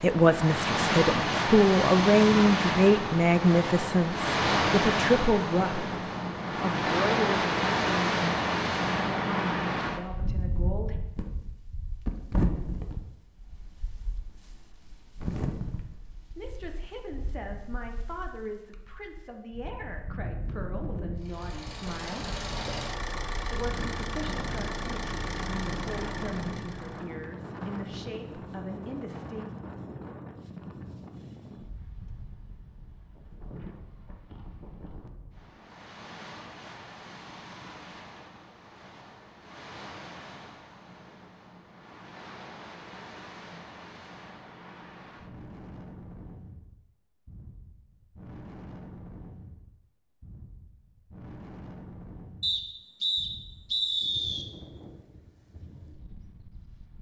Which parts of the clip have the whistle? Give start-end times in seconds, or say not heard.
52.4-54.5.